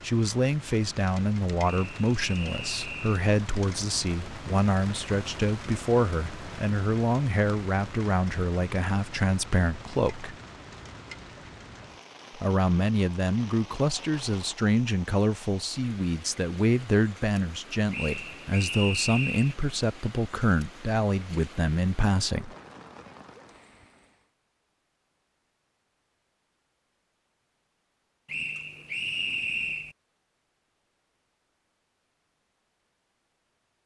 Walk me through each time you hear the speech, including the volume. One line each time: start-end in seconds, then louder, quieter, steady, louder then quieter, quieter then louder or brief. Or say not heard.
0.0-10.3 steady
12.3-22.5 steady.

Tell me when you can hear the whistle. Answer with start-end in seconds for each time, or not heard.
1.6-3.1, 17.9-19.6, 28.2-29.9.